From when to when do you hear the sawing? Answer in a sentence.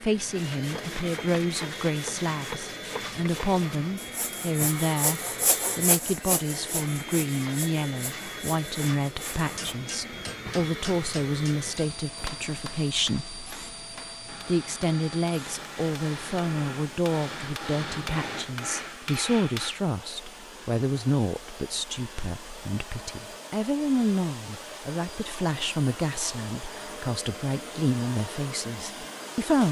The sawing can be heard from 0.3 to 9.8 s.